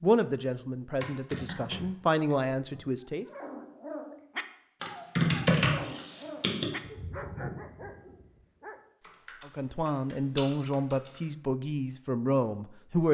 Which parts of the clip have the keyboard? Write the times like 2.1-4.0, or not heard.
1.0-2.9, 4.8-6.7, 9.0-11.2.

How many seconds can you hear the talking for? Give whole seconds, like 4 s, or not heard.
7 s.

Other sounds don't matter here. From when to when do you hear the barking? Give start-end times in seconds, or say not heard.
3.0-8.8.